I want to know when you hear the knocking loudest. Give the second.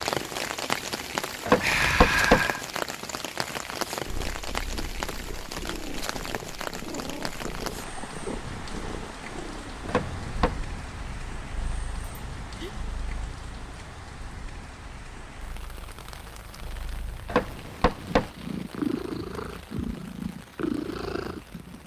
2 s.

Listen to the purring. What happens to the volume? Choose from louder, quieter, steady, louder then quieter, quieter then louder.
quieter then louder.